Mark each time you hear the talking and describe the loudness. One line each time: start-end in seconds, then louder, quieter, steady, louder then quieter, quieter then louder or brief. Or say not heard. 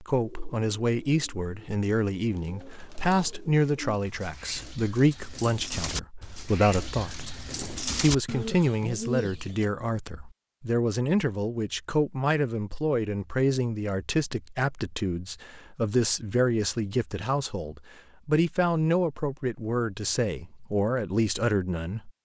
0.0-22.1 steady.